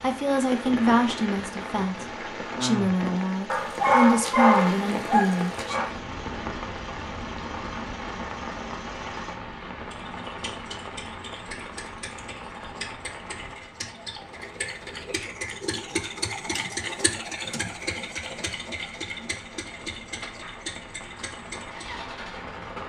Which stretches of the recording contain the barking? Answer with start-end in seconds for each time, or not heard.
3.5-5.9.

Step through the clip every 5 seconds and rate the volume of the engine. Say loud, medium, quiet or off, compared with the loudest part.
medium, medium, medium, loud, medium.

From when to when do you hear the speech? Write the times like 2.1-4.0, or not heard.
0.0-6.0.